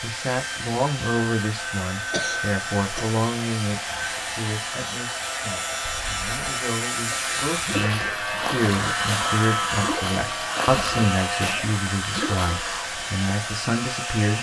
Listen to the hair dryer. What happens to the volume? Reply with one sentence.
The volume of the hair dryer stays about the same.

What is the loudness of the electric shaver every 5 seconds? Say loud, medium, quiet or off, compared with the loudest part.
medium, loud, loud.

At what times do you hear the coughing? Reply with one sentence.
The coughing can be heard from 2.1 to 3.2 s.